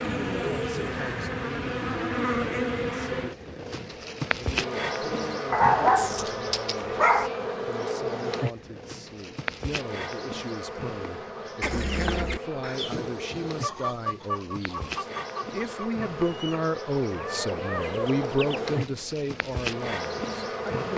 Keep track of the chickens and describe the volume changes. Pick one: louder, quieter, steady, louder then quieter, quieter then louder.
quieter then louder.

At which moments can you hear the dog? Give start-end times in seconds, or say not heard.
5.5-7.3.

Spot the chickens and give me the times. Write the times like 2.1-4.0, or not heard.
11.6-18.8.